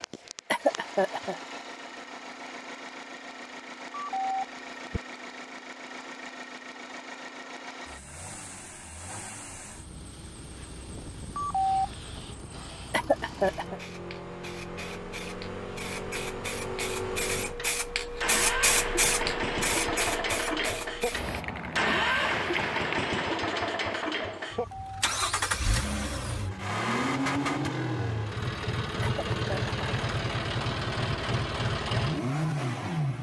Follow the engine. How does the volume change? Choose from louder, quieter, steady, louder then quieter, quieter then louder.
louder.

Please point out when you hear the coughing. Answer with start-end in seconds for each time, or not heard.
0.5-1.4, 12.9-13.8, 29.0-29.8.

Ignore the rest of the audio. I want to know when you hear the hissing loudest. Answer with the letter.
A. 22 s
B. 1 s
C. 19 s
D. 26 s
C.